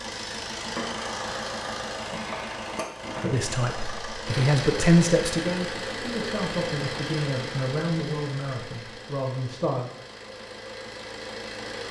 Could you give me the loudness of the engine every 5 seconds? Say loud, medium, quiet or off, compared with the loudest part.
loud, loud, medium.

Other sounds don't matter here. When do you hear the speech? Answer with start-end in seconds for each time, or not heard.
3.2-9.9.